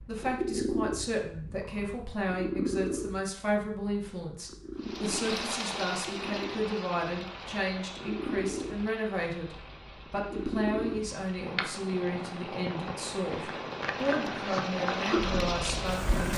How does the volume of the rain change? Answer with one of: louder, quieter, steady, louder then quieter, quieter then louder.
quieter then louder.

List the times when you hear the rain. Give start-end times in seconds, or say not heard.
4.8-16.3.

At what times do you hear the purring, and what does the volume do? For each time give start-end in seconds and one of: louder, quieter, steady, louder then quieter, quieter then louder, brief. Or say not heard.
0.0-16.3 quieter then louder.